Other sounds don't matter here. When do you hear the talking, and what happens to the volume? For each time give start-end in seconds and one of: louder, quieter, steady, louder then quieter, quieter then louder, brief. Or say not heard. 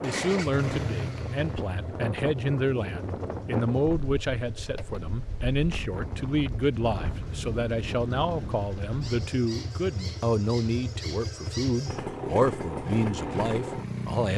0.0-14.3 steady.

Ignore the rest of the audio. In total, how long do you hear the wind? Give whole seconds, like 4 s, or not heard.
9 s.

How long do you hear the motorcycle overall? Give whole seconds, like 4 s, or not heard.
14 s.